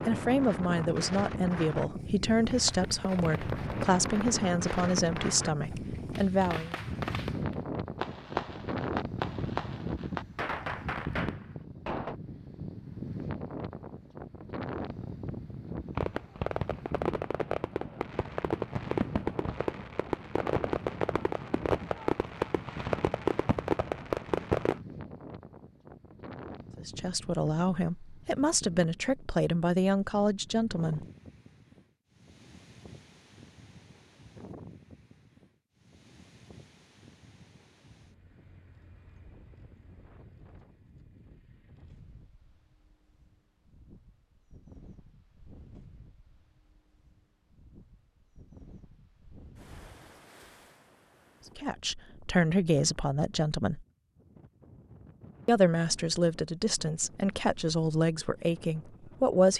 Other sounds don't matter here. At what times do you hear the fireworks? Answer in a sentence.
You can hear the fireworks from 2.5 to 12.2 s and from 15.9 to 24.8 s.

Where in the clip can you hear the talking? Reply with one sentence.
You can hear the talking from 0.1 to 6.8 s, from 26.8 to 31.1 s, from 51.5 to 53.9 s and from 55.5 to 59.5 s.